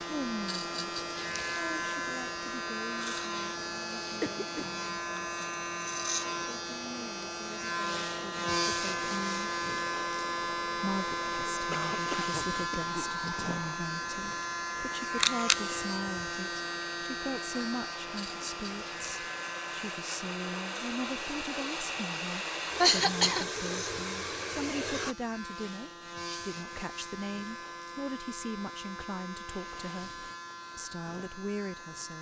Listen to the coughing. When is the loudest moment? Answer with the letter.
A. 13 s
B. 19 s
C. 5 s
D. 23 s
D.